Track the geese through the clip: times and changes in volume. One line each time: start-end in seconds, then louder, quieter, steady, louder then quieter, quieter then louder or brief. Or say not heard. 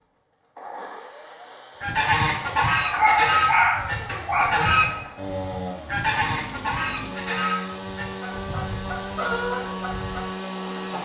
1.8-11.0 quieter.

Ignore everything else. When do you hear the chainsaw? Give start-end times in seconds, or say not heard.
0.0-11.0.